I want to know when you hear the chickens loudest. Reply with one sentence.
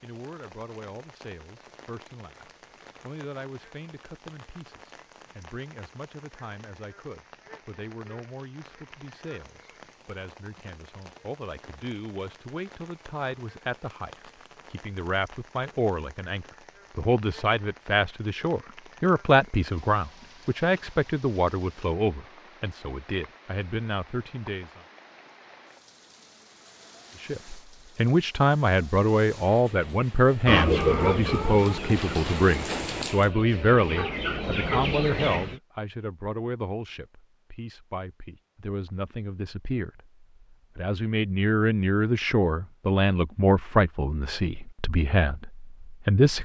The volume of the chickens peaks at 31 seconds.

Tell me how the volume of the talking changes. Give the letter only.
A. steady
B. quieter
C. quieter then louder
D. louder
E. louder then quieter
D.